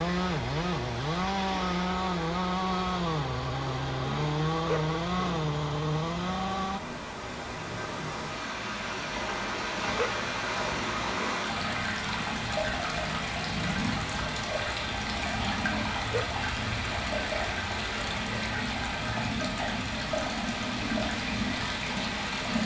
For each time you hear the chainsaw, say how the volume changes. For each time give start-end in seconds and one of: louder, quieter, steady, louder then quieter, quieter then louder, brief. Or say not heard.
0.0-6.8 steady.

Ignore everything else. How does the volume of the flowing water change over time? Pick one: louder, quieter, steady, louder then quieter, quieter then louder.
louder.